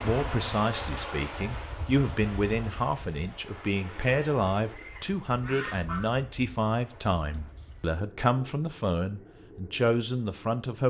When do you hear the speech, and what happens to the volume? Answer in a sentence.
You can hear the speech from 0.0 to 10.8 s, at a steady volume.